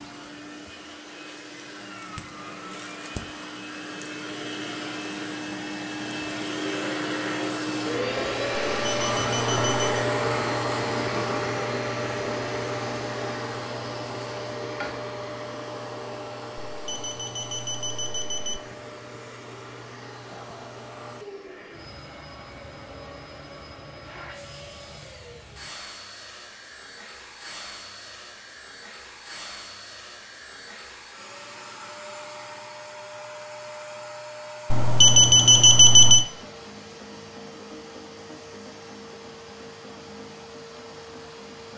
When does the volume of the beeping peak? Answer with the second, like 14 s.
36 s.